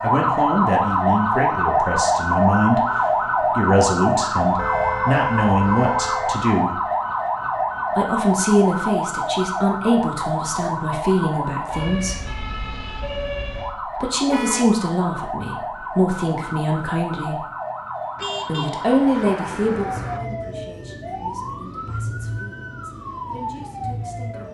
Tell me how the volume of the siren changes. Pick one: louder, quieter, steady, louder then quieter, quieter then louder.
quieter.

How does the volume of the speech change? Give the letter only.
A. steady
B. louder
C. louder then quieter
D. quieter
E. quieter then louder
D.